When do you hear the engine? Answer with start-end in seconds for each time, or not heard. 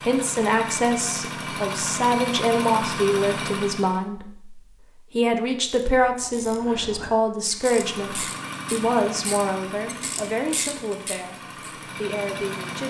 0.0-4.0, 7.5-12.8.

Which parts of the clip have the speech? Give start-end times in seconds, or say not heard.
0.0-12.8.